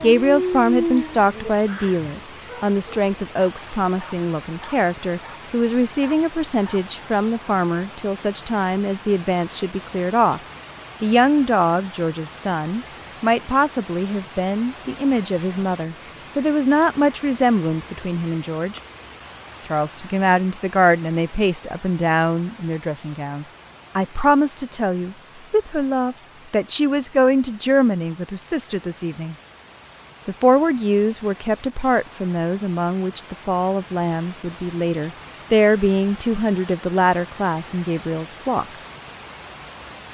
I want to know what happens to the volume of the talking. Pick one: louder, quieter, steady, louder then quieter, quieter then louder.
steady.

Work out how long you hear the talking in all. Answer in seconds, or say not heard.
36 s.